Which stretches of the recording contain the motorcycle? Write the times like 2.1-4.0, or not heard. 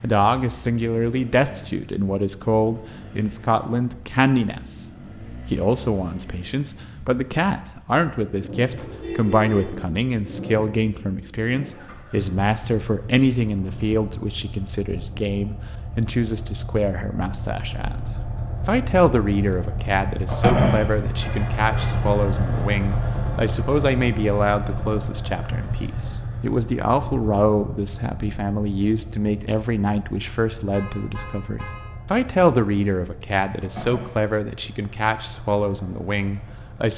0.0-36.9.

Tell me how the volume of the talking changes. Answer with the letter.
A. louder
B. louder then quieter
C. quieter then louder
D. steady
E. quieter
D.